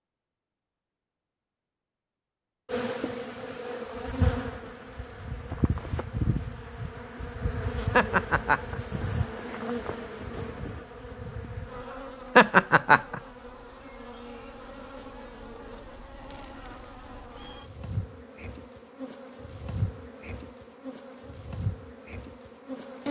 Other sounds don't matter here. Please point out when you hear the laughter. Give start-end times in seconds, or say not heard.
7.9-8.8, 12.3-13.2.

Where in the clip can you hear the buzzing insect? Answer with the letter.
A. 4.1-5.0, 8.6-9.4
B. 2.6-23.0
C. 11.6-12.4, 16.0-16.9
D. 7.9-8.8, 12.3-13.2
B.